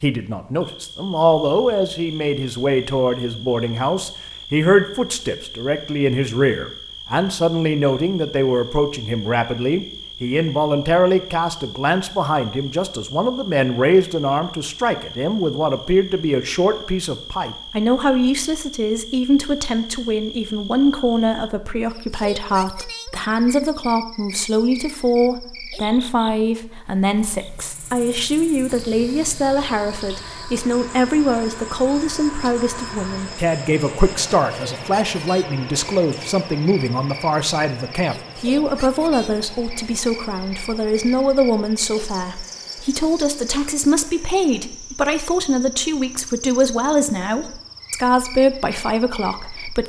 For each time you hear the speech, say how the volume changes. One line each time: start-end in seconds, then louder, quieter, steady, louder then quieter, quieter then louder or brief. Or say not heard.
0.0-49.8 steady.